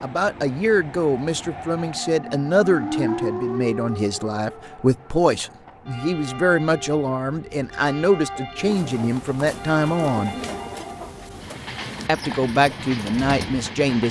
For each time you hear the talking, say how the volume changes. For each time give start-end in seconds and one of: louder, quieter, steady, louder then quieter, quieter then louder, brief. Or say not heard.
0.0-10.3 steady
12.1-14.0 brief.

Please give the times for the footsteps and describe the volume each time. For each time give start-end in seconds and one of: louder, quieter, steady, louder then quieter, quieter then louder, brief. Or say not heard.
not heard.